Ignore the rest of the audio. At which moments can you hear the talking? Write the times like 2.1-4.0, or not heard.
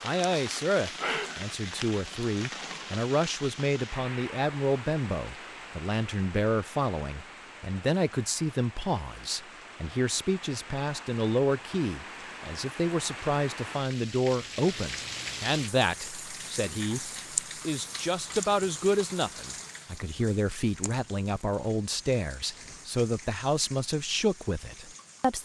0.0-25.3.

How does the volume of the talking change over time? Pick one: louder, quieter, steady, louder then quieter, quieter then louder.
steady.